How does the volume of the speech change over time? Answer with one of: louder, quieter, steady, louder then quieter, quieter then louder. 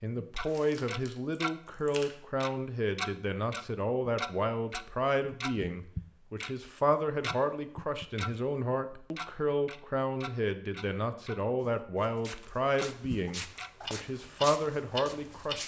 steady.